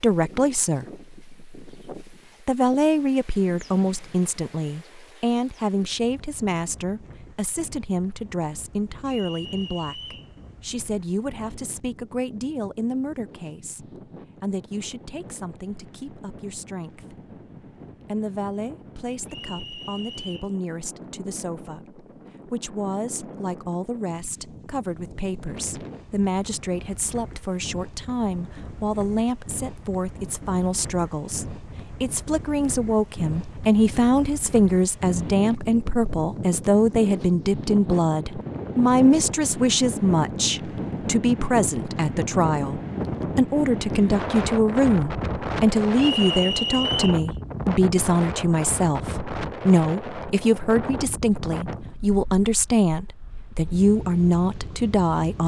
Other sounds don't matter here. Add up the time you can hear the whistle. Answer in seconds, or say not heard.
4 s.